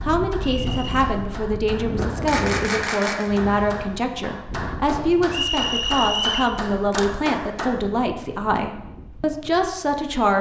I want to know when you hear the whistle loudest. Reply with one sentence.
The volume of the whistle peaks at 6 seconds.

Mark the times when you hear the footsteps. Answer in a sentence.
You can't hear the footsteps here.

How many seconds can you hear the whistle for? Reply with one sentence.
The whistle can be heard for 2 seconds in total.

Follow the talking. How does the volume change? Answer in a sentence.
The volume of the talking stays about the same.